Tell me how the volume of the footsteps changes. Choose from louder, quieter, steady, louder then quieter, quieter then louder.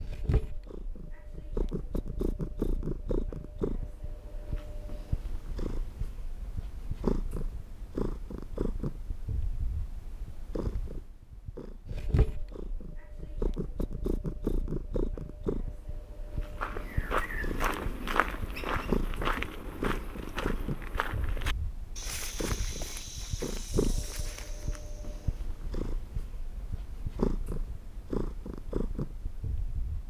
quieter.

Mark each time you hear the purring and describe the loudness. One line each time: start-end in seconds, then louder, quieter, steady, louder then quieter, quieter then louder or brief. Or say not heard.
0.0-30.0 steady.